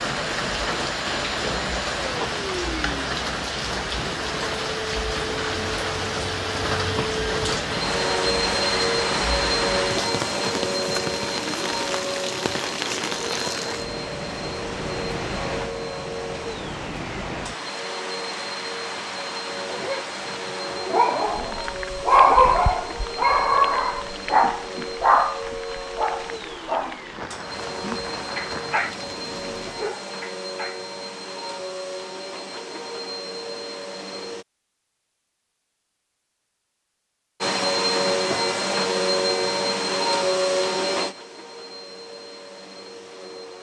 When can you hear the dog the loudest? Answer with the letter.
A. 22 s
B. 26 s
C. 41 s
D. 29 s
A.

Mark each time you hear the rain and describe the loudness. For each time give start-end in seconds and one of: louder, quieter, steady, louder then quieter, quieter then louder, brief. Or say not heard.
0.0-29.9 quieter.